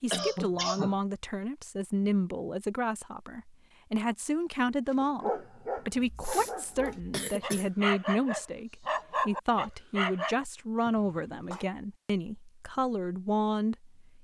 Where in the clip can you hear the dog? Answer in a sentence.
The dog can be heard from 5.0 to 10.3 s.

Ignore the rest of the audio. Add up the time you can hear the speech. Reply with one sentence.
The speech can be heard for 14 seconds in total.